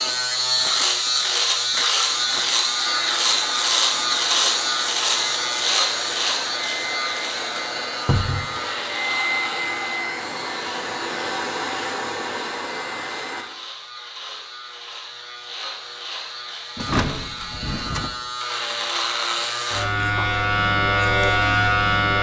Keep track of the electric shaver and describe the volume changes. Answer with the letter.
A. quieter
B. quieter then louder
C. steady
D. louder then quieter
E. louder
B.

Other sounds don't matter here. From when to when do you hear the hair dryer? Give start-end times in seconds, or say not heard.
2.1-13.4.